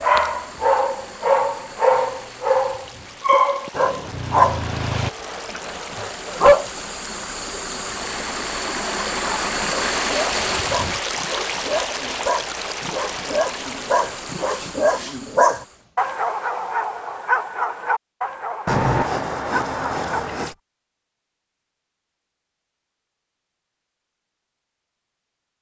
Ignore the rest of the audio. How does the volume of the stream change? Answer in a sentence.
The volume of the stream goes up, then down.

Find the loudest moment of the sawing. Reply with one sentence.
The volume of the sawing peaks at 19 seconds.